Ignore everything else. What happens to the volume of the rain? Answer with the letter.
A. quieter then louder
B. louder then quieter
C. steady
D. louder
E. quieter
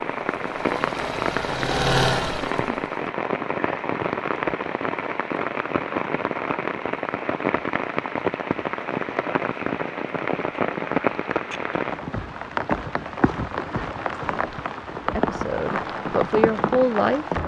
C.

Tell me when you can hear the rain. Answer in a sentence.
You can hear the rain from 0.0 to 17.4 s.